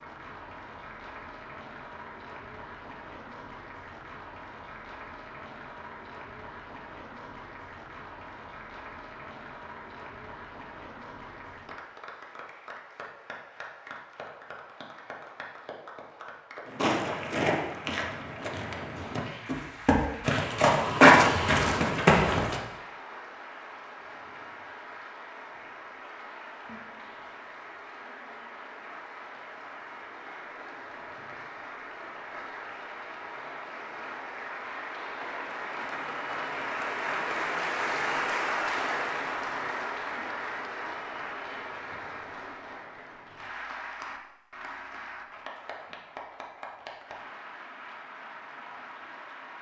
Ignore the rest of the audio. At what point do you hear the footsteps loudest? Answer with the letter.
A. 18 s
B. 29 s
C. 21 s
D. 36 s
C.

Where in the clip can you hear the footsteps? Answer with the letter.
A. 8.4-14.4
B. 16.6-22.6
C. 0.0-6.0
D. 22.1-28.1
B.